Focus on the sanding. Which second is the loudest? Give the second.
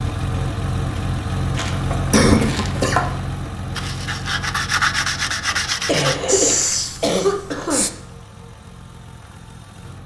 5 s.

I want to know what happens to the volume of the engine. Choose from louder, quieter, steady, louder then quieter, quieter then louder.
quieter.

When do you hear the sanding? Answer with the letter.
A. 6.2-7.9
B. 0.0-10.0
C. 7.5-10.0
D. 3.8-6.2
D.